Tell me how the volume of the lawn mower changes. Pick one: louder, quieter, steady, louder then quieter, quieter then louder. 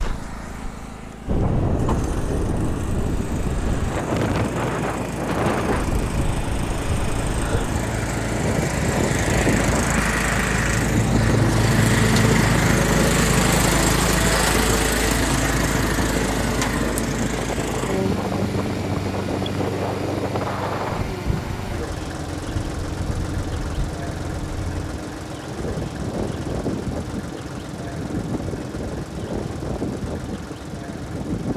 louder then quieter.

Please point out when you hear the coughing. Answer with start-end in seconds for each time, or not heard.
not heard.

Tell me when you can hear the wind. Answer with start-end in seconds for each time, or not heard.
0.0-31.5.